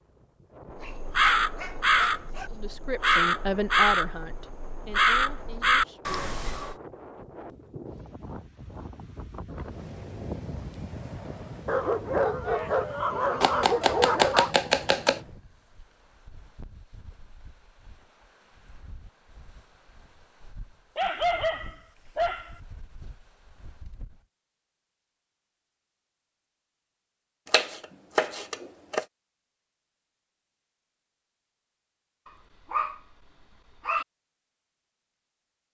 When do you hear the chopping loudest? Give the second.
14 s.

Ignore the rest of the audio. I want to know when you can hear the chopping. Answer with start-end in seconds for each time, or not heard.
13.4-15.2, 27.4-29.1.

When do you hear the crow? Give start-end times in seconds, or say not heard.
0.8-6.8.